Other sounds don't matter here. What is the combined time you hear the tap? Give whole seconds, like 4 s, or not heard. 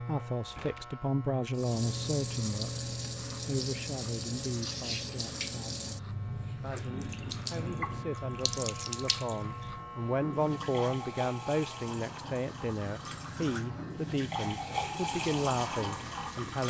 15 s.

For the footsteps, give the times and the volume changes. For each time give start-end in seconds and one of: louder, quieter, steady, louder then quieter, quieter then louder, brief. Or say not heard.
not heard.